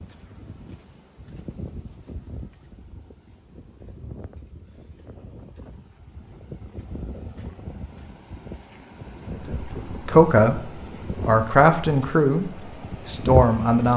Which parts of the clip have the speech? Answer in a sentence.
You can hear the speech from 9.3 to 13.9 s.